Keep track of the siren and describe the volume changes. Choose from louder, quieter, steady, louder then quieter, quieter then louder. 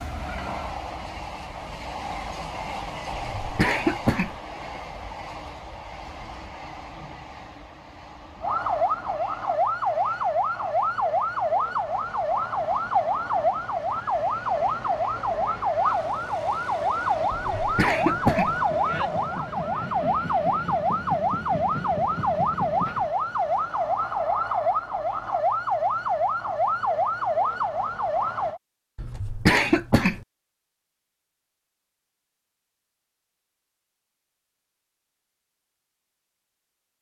steady.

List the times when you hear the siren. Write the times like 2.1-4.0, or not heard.
8.4-28.6.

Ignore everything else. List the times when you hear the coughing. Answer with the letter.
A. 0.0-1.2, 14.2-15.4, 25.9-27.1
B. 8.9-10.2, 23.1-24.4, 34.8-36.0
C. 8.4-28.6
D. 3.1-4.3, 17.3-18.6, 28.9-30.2
D.